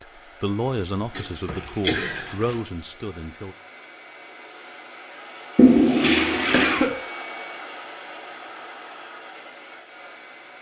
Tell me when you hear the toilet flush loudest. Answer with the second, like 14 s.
6 s.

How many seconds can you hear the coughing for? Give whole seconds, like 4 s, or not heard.
2 s.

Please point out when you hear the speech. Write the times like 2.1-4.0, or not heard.
0.0-3.5.